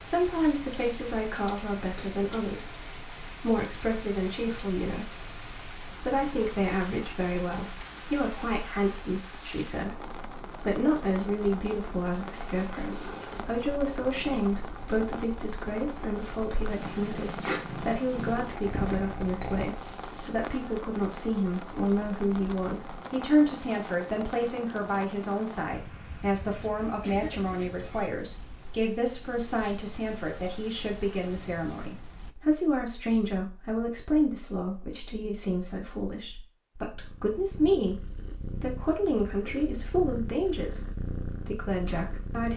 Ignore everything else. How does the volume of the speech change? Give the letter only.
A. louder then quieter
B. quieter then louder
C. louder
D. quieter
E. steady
E.